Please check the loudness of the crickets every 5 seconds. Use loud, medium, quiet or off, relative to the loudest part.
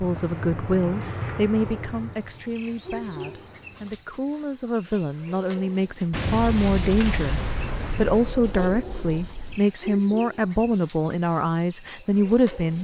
medium, loud, loud.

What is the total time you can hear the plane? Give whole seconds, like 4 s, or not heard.
4 s.